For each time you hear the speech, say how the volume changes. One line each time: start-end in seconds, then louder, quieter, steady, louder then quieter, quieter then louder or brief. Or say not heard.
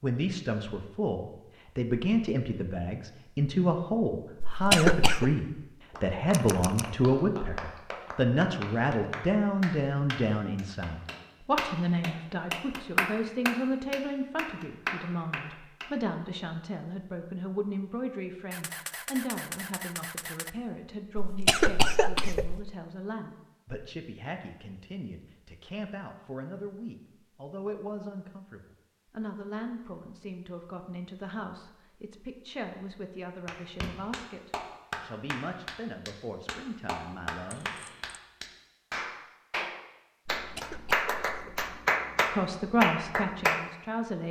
0.0-37.7 quieter
42.3-44.2 brief.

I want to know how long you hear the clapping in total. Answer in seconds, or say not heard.
20 s.